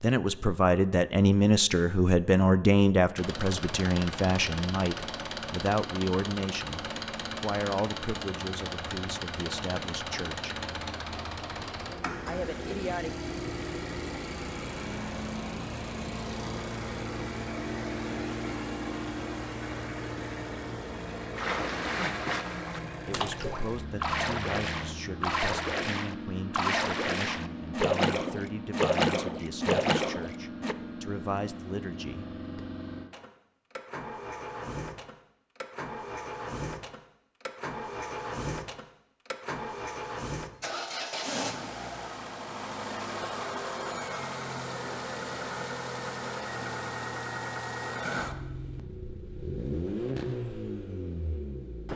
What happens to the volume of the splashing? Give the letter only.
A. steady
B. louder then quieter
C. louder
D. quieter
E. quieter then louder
C.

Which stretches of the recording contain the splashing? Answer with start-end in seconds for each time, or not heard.
21.4-30.8.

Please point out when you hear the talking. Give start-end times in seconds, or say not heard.
0.0-10.6, 12.2-13.1, 23.1-32.6.